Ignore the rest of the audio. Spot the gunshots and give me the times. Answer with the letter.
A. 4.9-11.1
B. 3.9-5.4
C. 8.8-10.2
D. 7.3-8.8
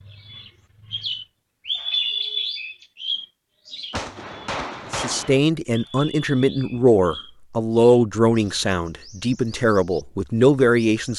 B.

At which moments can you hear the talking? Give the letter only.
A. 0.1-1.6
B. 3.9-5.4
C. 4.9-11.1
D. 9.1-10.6
C.